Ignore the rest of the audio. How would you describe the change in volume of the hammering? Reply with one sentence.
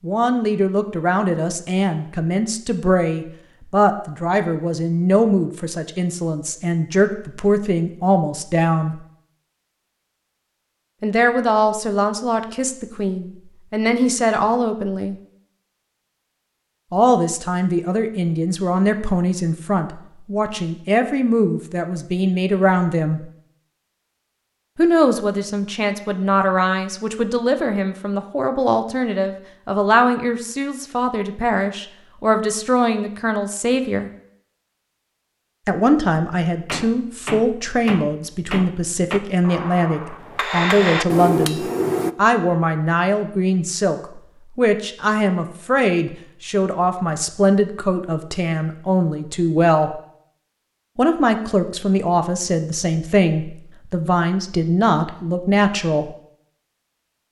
The loudness of the hammering goes up.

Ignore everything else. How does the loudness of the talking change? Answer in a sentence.
The volume of the talking stays about the same.